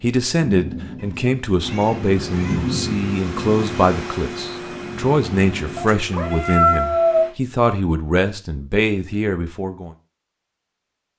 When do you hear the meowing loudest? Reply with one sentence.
The loudest moment of the meowing is at 7 seconds.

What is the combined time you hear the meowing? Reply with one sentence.
The meowing can be heard for 3 seconds in total.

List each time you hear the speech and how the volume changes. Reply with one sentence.
The speech can be heard from 0.0 to 9.9 s, at a steady volume.